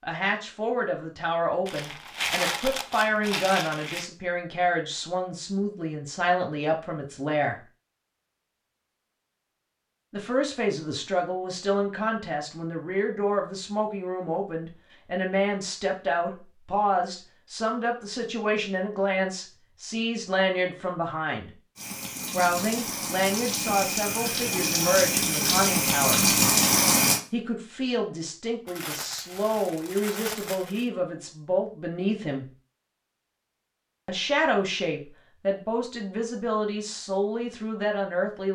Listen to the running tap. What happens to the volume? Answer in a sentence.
The loudness of the running tap goes up.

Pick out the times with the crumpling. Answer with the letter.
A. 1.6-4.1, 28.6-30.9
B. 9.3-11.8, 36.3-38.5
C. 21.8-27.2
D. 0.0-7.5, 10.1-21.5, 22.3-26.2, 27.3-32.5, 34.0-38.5
A.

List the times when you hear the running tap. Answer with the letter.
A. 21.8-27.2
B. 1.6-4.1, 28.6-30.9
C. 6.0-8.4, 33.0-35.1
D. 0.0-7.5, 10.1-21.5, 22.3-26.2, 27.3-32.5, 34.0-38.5
A.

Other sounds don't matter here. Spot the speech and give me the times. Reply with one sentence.
You can hear the speech from 0.0 to 7.5 s, from 10.1 to 21.5 s, from 22.3 to 26.2 s, from 27.3 to 32.5 s and from 34.0 to 38.5 s.